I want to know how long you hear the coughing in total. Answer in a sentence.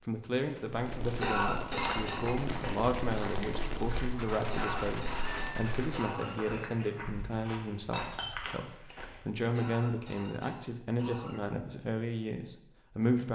The coughing can be heard for 6 seconds in total.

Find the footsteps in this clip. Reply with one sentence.
You can hear the footsteps from 0.8 to 9.2 s.